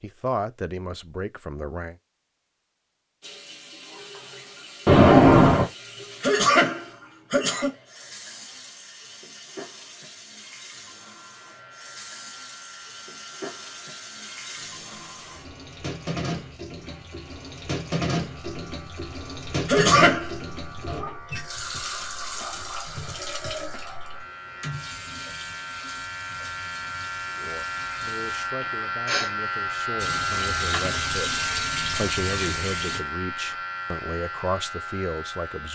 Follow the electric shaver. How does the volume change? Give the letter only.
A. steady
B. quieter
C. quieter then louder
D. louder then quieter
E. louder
E.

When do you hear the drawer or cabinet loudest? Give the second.
5 s.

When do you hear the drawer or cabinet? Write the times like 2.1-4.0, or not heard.
4.8-5.7, 30.3-30.9.